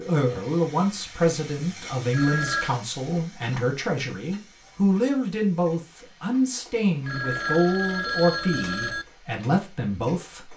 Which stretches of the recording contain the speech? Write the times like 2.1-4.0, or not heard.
0.0-10.5.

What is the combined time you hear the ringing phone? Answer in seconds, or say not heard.
3 s.